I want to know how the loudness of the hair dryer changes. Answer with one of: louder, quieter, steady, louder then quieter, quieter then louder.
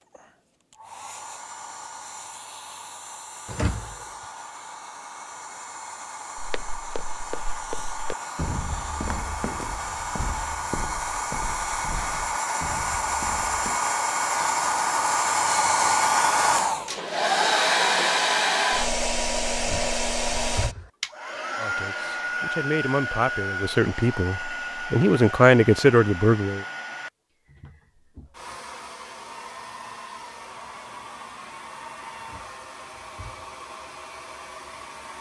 louder then quieter.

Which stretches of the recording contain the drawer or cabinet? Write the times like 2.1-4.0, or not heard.
3.5-4.0, 19.6-20.9, 32.1-33.5.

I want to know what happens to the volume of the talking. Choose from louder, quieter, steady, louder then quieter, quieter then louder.
louder.